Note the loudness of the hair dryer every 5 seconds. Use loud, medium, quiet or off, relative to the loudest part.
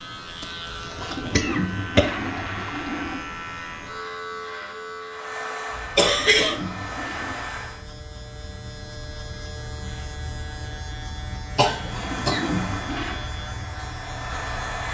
off, loud, loud.